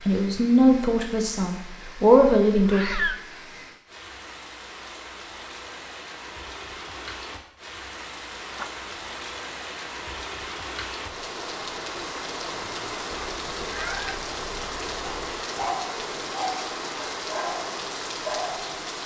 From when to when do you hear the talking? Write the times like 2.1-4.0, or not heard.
0.1-2.9.